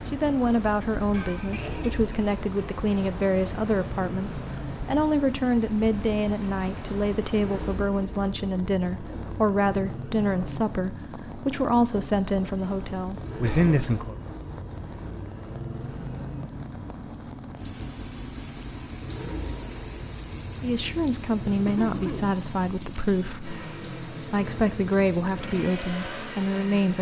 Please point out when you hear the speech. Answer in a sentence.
The speech can be heard from 0.1 to 14.2 s and from 20.6 to 26.9 s.